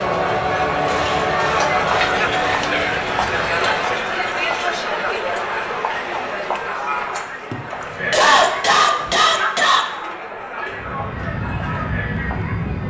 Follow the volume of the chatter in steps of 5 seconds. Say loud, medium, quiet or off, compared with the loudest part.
loud, medium, medium.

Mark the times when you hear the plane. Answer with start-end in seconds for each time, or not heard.
0.0-3.8, 10.7-12.8.